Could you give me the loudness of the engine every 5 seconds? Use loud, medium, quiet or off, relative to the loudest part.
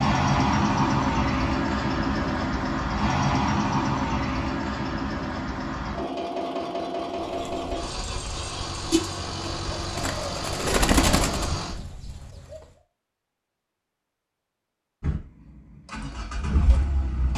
loud, medium, medium, medium.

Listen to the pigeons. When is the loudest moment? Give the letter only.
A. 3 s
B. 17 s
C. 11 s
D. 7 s
C.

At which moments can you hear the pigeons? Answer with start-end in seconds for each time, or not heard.
7.2-12.6.